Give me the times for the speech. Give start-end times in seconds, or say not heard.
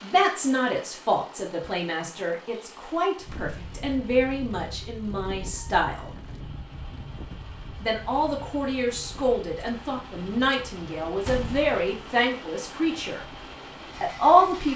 0.0-6.1, 7.8-13.2, 14.0-14.7.